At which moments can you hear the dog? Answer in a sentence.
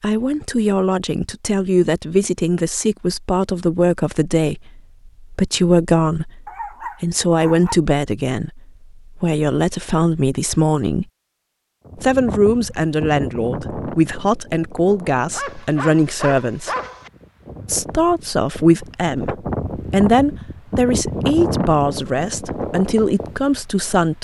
The dog can be heard from 6.5 to 7.8 s and from 15.3 to 17.1 s.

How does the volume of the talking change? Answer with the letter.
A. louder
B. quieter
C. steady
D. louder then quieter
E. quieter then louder
C.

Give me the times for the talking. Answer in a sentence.
The talking can be heard from 0.0 to 11.1 s, from 11.9 to 16.7 s and from 17.6 to 24.1 s.